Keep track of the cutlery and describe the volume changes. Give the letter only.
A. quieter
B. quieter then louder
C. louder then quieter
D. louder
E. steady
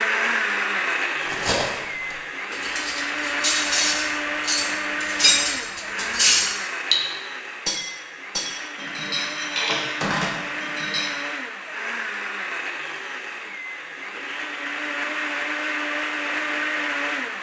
C.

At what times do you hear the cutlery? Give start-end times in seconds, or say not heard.
1.2-7.0, 7.7-11.2.